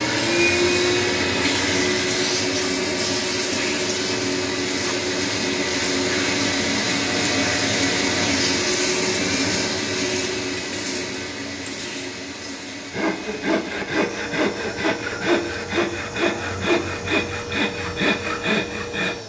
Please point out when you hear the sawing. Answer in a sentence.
You can hear the sawing from 12.9 to 19.2 s.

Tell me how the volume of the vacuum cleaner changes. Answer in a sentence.
The loudness of the vacuum cleaner goes down.